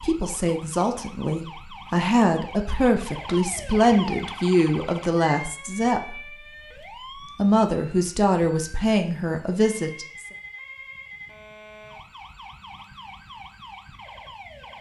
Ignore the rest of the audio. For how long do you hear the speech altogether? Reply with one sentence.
You can hear the speech for 9 seconds altogether.